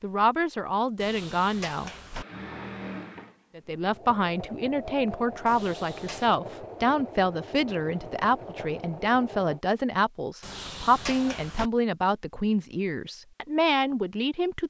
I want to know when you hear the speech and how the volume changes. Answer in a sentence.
You can hear the speech briefly from 0.0 to 1.9 s; and from 3.5 to 14.6 s, at a steady volume.